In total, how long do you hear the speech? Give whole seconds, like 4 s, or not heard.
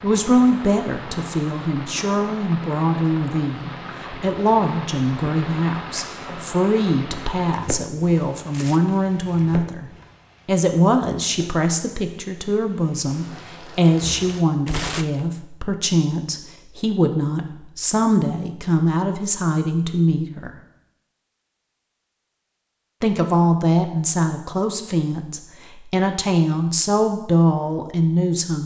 26 s.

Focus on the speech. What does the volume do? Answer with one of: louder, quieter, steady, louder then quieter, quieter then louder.
steady.